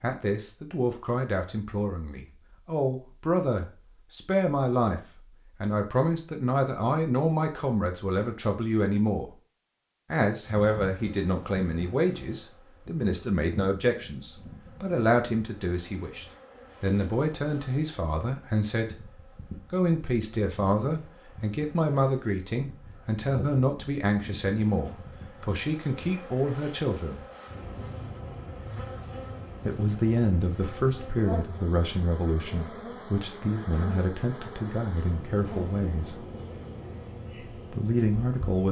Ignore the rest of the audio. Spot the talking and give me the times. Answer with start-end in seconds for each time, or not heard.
0.0-5.0, 5.6-9.3, 10.1-19.1, 19.7-27.2, 29.6-36.2, 37.5-38.6.